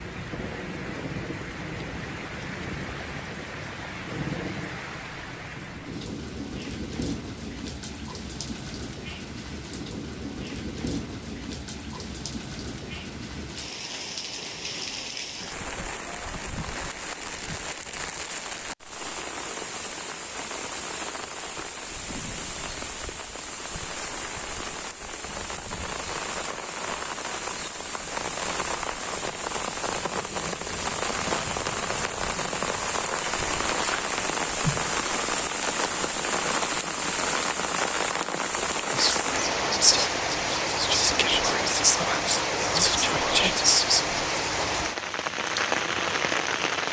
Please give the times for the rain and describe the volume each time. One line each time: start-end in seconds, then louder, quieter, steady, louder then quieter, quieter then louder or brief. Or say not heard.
0.0-46.8 louder.